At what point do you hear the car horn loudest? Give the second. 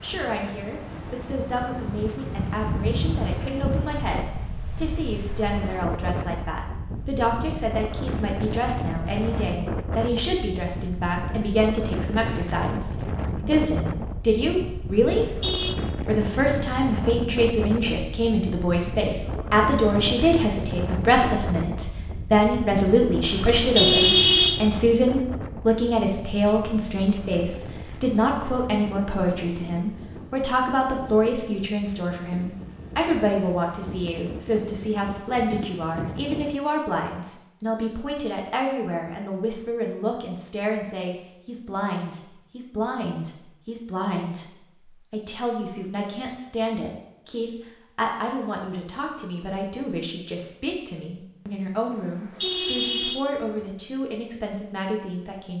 24 s.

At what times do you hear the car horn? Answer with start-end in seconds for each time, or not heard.
15.2-15.8, 23.2-24.6, 51.9-53.6.